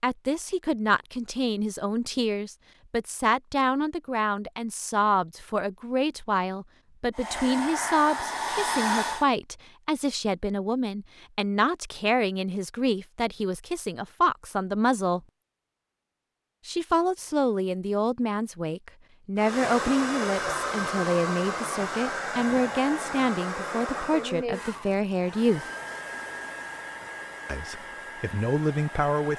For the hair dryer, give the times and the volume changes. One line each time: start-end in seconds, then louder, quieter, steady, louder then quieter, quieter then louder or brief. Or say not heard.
7.2-9.2 brief
19.4-29.3 quieter.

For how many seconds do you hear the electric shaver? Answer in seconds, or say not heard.
not heard.